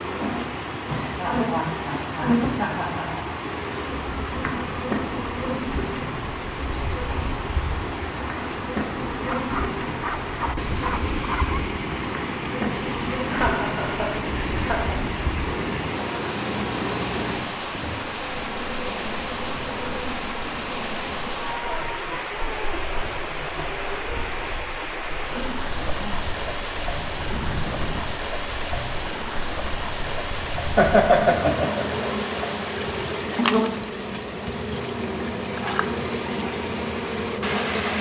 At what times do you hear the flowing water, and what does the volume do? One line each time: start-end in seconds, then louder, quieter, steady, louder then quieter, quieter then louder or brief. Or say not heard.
0.0-37.9 steady.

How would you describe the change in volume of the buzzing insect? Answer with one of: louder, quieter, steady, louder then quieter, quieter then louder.
quieter then louder.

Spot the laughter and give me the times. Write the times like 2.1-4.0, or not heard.
1.1-3.3, 13.1-15.0, 30.8-31.9.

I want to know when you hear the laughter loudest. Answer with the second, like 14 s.
31 s.